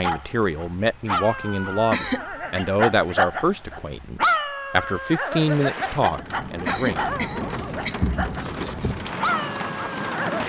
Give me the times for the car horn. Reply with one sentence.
The car horn can't be heard in this clip.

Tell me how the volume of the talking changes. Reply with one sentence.
The loudness of the talking stays about the same.